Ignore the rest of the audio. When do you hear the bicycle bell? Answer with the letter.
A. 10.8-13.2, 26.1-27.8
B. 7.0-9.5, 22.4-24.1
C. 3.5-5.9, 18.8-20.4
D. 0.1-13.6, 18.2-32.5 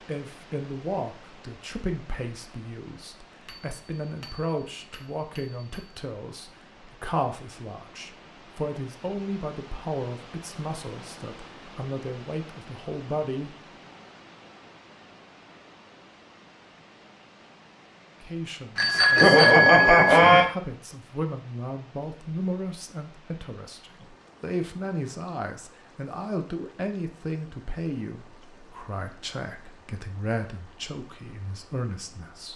C.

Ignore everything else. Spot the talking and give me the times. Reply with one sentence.
The talking can be heard from 0.1 to 13.6 s and from 18.2 to 32.5 s.